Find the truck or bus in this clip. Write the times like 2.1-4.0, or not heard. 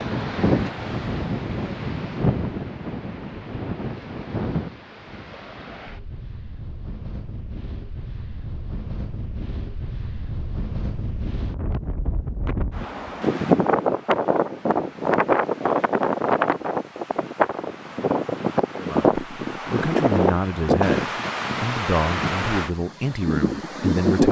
not heard.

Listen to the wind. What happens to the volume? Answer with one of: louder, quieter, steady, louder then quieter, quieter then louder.
quieter then louder.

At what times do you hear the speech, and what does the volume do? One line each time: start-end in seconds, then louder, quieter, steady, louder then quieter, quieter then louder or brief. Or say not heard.
18.8-24.2 steady.